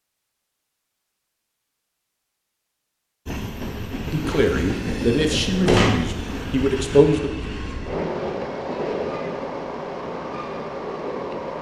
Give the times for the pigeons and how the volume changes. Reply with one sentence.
The pigeons can't be heard in this clip.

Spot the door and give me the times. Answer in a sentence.
The door can be heard from 5.3 to 6.0 s.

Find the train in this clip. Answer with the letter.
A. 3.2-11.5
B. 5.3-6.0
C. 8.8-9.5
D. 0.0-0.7
A.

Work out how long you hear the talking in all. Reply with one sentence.
You can hear the talking for 3 seconds altogether.